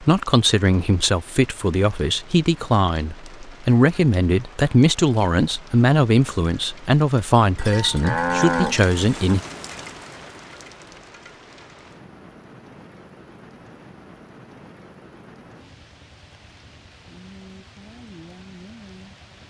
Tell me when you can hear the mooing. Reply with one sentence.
You can hear the mooing from 7.5 to 9.3 s.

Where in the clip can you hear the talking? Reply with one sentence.
The talking can be heard from 0.0 to 9.4 s.